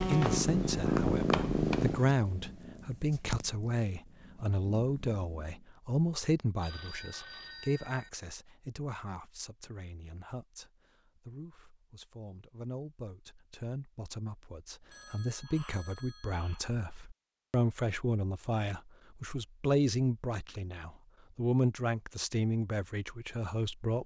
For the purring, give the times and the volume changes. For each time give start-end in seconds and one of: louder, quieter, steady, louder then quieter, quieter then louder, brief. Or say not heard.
0.0-5.7 quieter then louder.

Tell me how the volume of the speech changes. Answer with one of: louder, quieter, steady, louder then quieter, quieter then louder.
quieter then louder.